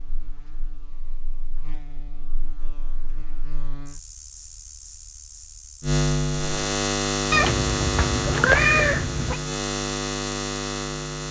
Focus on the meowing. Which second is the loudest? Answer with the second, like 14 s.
9 s.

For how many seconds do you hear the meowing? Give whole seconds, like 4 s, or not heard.
2 s.